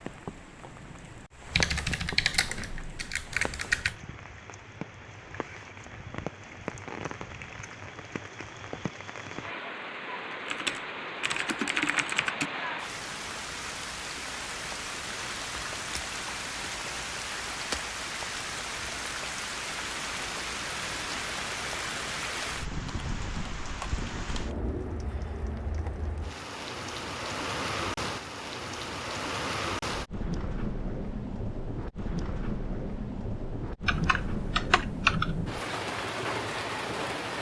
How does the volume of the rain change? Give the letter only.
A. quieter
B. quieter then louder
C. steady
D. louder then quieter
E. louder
E.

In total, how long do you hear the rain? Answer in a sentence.
The rain can be heard for 37 seconds in total.